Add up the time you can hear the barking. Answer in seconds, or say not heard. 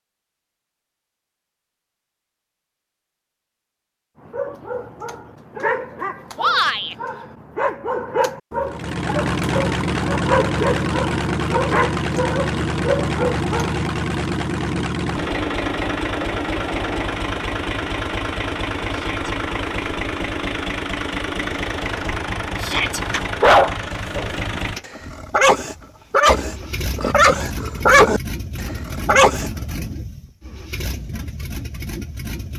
15 s.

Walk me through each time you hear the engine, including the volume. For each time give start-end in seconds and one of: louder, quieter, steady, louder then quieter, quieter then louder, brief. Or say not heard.
8.7-32.5 quieter.